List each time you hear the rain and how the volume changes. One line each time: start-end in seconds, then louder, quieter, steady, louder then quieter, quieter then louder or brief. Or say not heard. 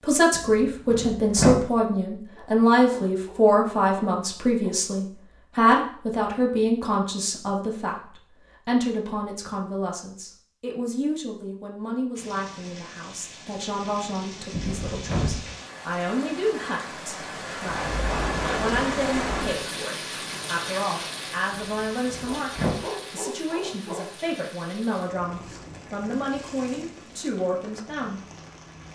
12.2-28.9 louder then quieter.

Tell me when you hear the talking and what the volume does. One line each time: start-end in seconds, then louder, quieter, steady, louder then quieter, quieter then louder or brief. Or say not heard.
0.0-28.2 quieter.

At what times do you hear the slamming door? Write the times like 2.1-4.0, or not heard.
0.3-1.6, 14.5-15.4, 21.5-22.8.